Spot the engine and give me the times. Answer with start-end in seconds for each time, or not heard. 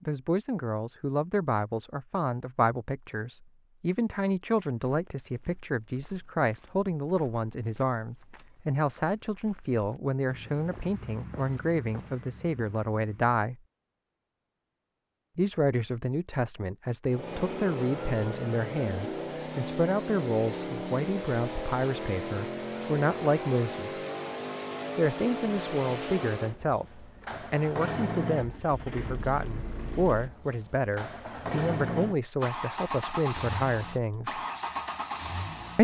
17.1-35.8.